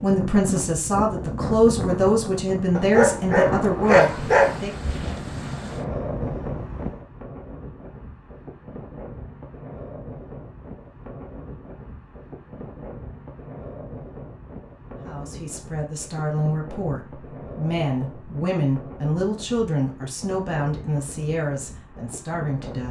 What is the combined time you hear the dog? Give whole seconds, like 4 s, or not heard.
2 s.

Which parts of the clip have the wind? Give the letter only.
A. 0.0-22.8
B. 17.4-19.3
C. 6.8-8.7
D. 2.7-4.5
A.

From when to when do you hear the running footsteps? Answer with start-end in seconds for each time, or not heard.
not heard.